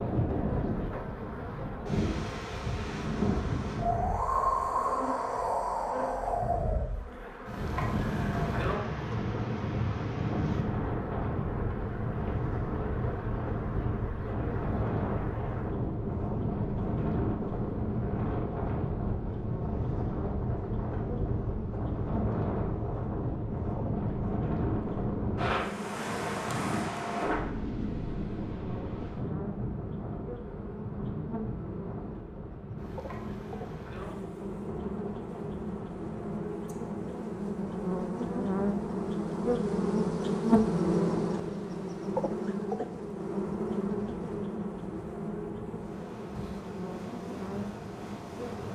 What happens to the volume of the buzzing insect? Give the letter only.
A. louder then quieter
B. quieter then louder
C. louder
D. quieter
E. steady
C.